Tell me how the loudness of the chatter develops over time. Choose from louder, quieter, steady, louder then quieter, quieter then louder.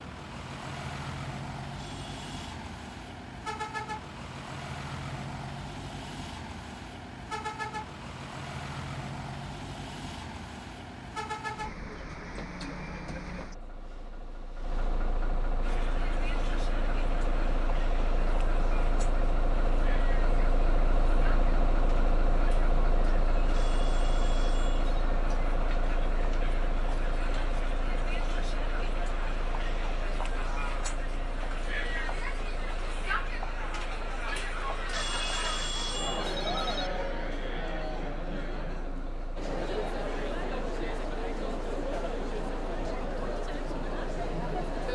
louder.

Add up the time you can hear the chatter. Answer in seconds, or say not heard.
29 s.